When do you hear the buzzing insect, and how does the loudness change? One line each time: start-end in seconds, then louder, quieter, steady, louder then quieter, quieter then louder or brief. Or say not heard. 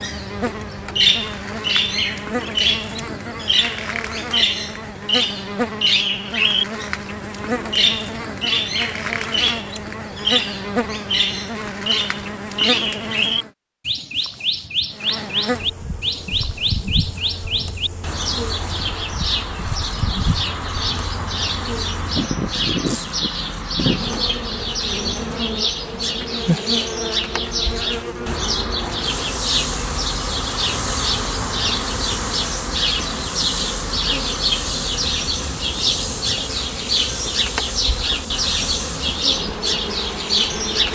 0.0-13.5 steady
14.9-40.9 steady.